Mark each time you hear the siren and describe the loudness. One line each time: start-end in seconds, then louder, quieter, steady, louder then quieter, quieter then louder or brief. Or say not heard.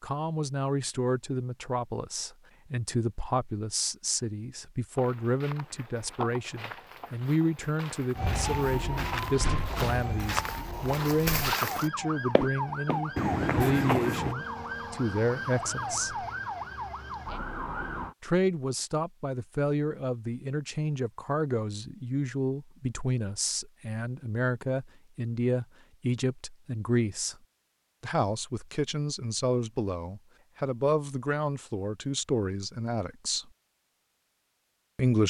8.2-18.1 steady.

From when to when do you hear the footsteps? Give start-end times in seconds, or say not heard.
5.0-14.3.